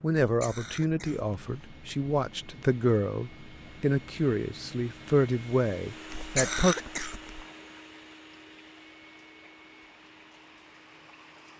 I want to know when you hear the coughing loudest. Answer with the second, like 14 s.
7 s.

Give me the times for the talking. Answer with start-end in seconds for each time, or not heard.
0.0-6.8.